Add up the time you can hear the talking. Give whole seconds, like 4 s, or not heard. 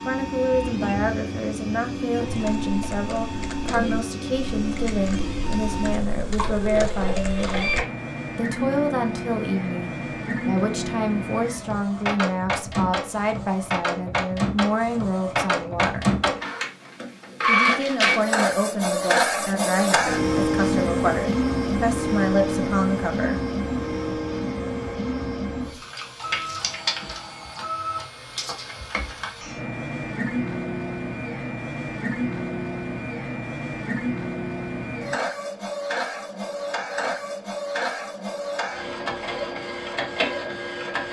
22 s.